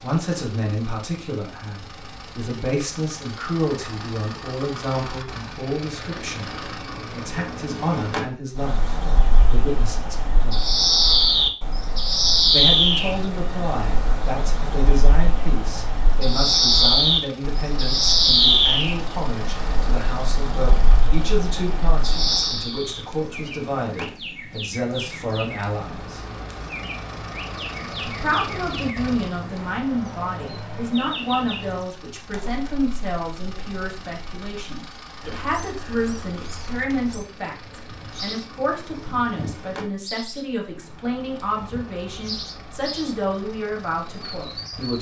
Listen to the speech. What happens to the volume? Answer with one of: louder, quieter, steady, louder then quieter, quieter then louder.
steady.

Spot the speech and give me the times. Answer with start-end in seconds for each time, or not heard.
0.0-10.6, 12.5-26.2, 28.1-44.9.